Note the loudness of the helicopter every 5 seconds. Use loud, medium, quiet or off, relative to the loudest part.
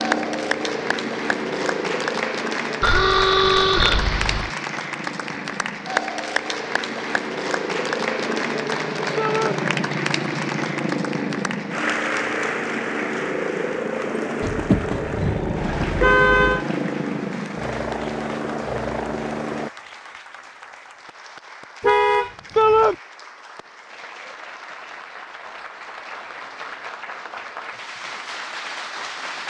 loud, loud, loud, loud, off, off.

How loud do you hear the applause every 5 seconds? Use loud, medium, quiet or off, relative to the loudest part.
loud, loud, loud, medium, quiet, medium.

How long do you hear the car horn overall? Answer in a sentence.
You can hear the car horn for 5 seconds altogether.